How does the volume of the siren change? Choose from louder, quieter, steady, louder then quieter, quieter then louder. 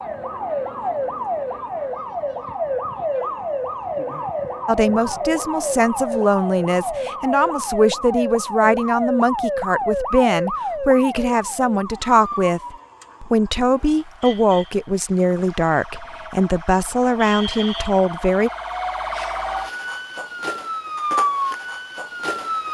quieter then louder.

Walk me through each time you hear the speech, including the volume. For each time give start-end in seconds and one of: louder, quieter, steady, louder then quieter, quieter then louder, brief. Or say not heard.
4.7-18.5 steady.